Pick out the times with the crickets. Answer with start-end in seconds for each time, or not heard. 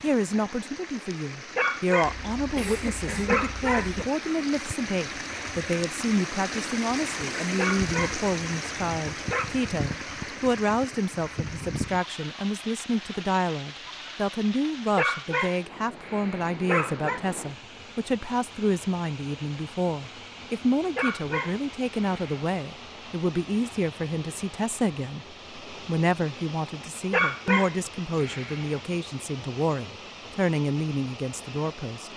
not heard.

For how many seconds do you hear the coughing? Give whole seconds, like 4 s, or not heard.
2 s.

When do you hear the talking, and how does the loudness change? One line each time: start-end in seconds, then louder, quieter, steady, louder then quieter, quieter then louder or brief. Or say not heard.
0.0-32.1 steady.